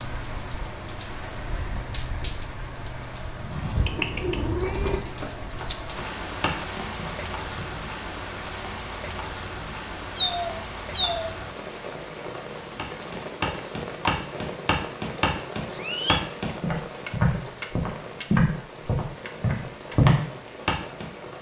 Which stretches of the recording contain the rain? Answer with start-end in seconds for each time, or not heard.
0.0-21.3.